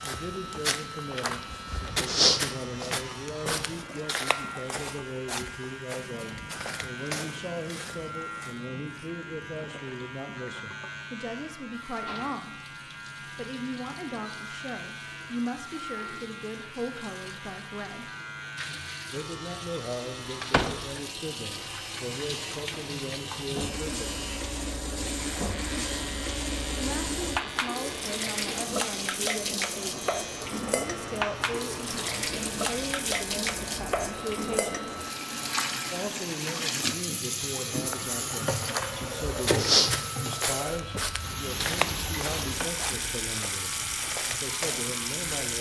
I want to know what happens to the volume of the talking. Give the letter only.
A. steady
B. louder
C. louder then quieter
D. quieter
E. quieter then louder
A.